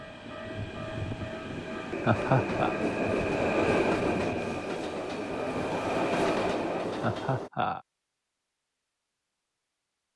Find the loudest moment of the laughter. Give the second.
2 s.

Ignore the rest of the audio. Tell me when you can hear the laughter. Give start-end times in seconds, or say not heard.
2.0-2.8, 7.0-7.8.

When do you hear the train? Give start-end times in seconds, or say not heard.
0.0-7.5.